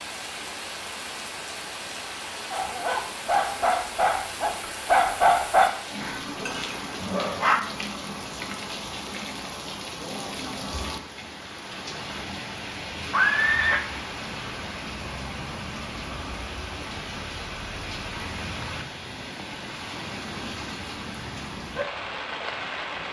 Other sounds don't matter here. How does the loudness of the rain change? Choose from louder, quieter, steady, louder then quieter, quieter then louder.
steady.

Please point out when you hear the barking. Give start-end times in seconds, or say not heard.
2.5-7.6.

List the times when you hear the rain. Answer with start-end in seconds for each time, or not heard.
0.0-23.0.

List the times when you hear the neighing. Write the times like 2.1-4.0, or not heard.
13.1-13.8.